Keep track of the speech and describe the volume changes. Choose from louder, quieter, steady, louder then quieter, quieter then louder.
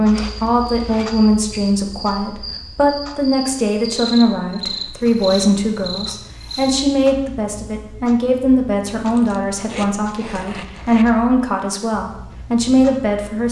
steady.